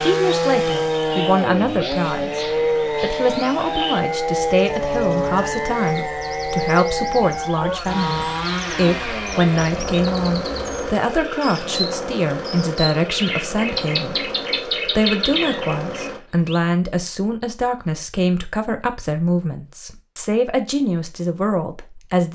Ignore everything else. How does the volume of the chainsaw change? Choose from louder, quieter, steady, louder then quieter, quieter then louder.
quieter.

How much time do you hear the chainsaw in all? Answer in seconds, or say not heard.
16 s.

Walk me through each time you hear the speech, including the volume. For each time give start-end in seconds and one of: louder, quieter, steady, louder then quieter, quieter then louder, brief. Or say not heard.
0.0-22.2 steady.